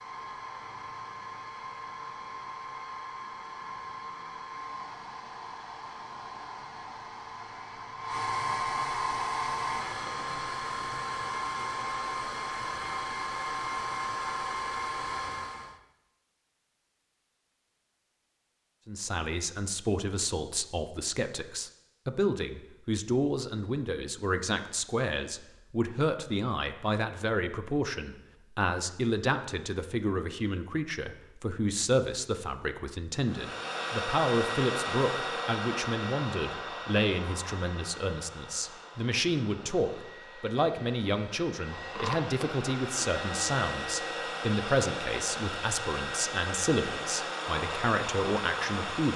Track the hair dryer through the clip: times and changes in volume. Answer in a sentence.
The hair dryer can be heard from 0.0 to 15.8 s, getting louder; and from 33.2 to 49.1 s, getting quieter then louder.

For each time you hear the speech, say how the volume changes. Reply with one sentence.
The speech can be heard from 18.9 to 49.1 s, at a steady volume.